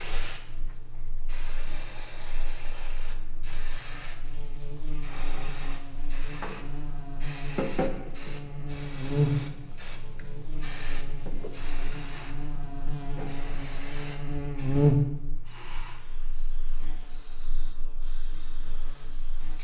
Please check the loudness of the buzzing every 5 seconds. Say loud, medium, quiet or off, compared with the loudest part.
quiet, loud, loud, medium.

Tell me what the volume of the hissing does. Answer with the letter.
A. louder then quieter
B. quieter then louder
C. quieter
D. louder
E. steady
A.